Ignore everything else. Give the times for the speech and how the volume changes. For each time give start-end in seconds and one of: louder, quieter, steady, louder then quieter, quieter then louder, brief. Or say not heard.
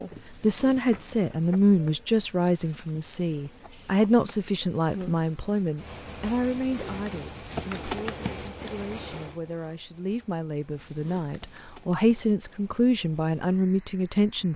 0.4-14.5 quieter then louder.